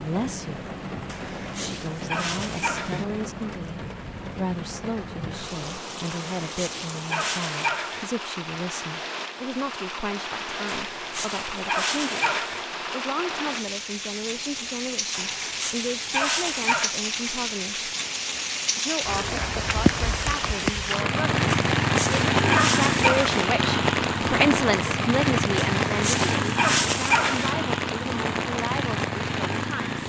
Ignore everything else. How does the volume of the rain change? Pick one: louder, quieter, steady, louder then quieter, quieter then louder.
louder.